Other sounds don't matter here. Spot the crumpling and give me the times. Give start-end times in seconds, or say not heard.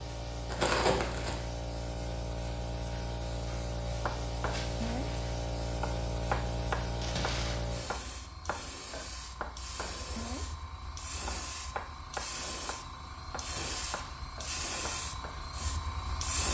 0.5-1.4, 7.0-7.6, 13.4-14.3.